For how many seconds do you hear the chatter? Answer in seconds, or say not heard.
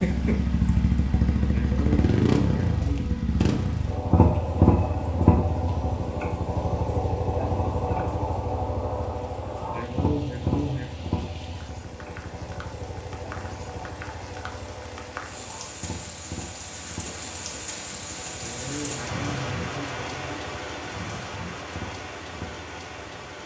not heard.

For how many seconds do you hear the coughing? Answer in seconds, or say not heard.
5 s.